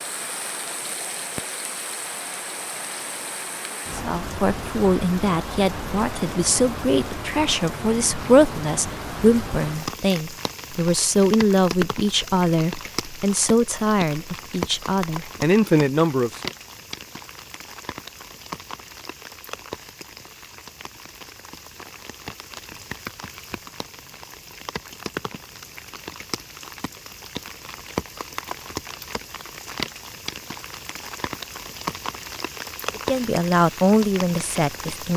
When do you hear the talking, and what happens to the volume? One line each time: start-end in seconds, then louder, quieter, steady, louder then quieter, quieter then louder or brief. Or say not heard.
4.0-16.5 steady
33.0-35.1 brief.